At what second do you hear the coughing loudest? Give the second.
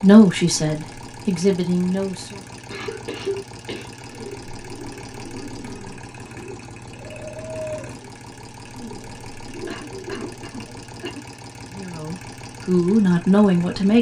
3 s.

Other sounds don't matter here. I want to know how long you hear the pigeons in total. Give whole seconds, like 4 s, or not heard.
7 s.